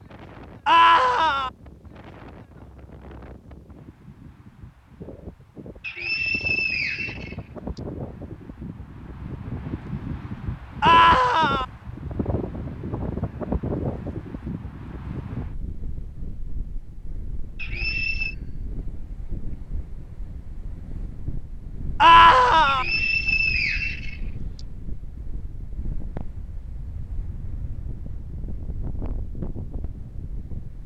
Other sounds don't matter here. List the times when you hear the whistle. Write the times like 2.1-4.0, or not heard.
5.8-7.8, 17.6-18.4, 22.6-24.6.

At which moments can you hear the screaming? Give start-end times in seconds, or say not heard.
0.7-1.5, 10.8-11.7, 22.0-22.9.